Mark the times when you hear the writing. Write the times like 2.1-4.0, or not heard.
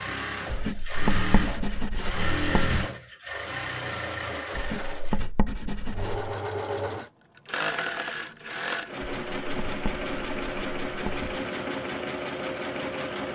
0.5-2.9, 4.5-6.3, 9.0-11.4.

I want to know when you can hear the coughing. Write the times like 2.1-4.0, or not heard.
not heard.